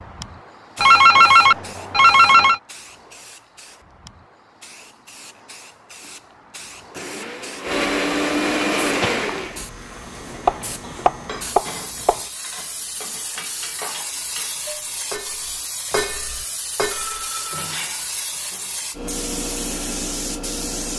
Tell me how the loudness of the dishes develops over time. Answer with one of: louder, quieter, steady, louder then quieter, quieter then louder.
louder then quieter.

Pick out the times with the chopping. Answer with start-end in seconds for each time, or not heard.
10.4-12.2.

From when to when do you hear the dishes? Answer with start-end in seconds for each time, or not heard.
10.8-18.8.